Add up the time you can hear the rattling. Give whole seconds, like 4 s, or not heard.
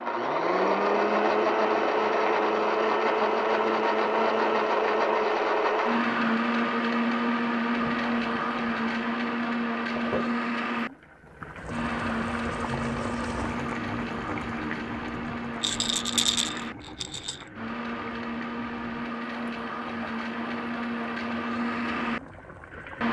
2 s.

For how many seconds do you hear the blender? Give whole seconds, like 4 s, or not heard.
23 s.